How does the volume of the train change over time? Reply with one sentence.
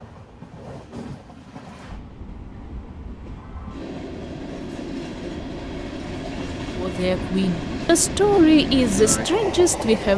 The volume of the train goes up.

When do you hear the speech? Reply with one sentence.
You can hear the speech from 6.8 to 10.1 s.